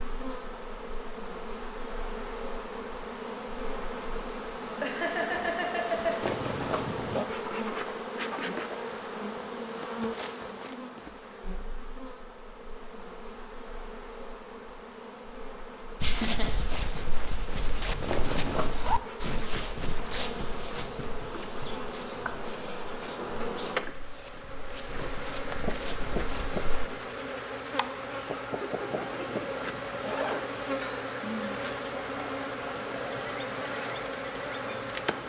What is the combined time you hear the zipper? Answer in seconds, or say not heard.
3 s.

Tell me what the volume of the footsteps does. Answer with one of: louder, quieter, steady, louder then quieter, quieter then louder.
quieter then louder.